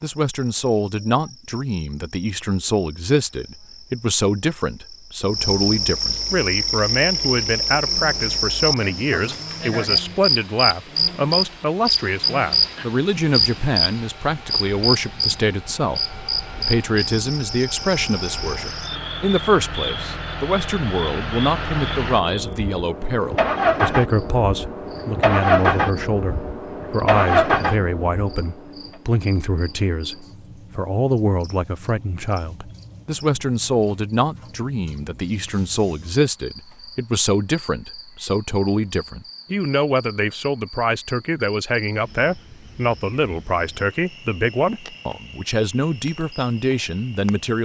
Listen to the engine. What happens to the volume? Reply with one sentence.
The volume of the engine goes up.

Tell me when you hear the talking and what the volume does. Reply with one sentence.
You can hear the talking from 0.0 to 47.6 s, at a steady volume.